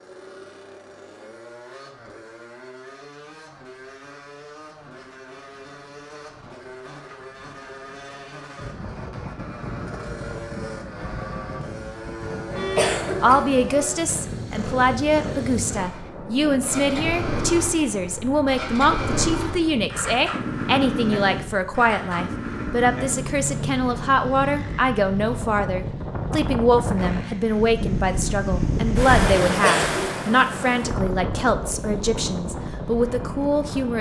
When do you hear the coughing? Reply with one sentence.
You can hear the coughing from 12.8 to 13.6 s and from 29.6 to 30.2 s.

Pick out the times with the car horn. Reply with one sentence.
You can hear the car horn from 12.5 to 13.0 s.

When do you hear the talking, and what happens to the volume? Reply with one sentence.
You can hear the talking from 12.5 to 33.9 s, at a steady volume.